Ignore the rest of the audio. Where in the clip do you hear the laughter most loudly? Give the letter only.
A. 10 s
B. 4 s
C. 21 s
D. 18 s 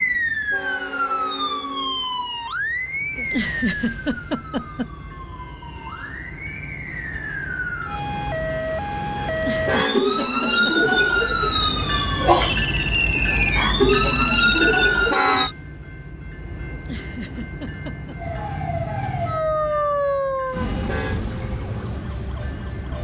B.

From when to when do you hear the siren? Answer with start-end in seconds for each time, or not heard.
0.0-15.6, 18.1-22.9.